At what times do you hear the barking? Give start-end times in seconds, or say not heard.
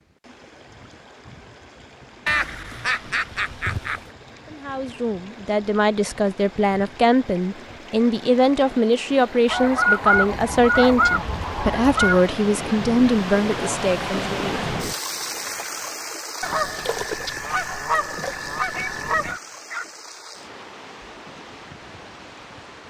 18.7-19.9.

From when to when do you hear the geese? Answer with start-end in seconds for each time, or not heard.
2.2-4.0, 9.4-12.3, 16.4-19.4.